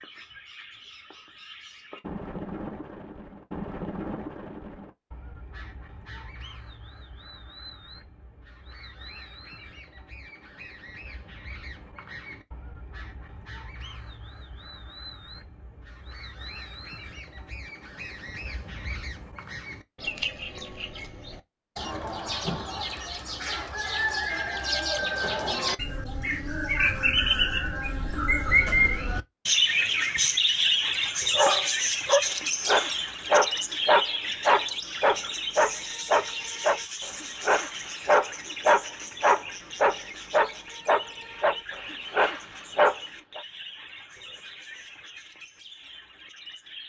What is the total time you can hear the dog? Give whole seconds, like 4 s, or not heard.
12 s.